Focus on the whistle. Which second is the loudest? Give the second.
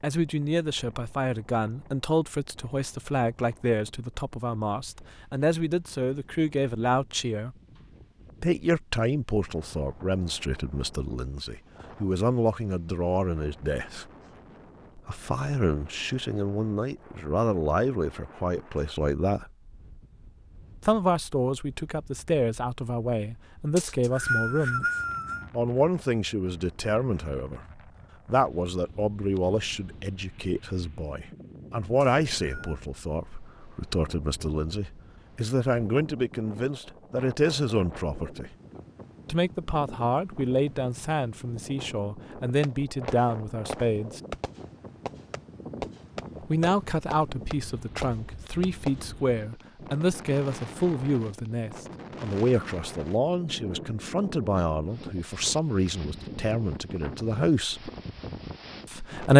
24 s.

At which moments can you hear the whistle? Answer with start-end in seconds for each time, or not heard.
23.8-25.4, 32.0-32.8.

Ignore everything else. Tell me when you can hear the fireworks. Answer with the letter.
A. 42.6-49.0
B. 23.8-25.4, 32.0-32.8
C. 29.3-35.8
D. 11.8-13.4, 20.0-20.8
A.